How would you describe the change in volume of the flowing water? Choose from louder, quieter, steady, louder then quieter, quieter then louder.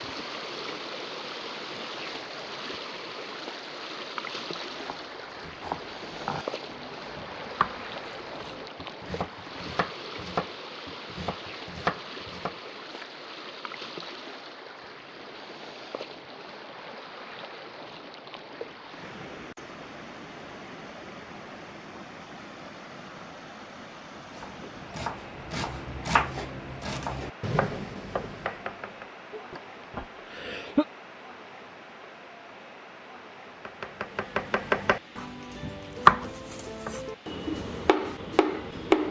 quieter.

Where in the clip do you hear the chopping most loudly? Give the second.
36 s.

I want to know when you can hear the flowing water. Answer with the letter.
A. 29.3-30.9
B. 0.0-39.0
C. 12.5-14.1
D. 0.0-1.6
B.